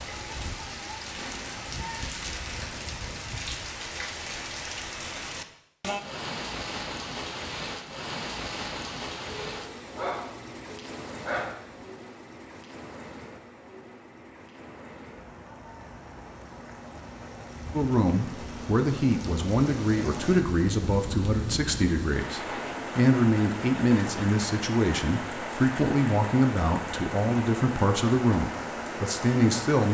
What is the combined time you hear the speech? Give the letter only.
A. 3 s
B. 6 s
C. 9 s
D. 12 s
D.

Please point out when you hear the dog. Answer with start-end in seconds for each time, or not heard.
9.2-11.9.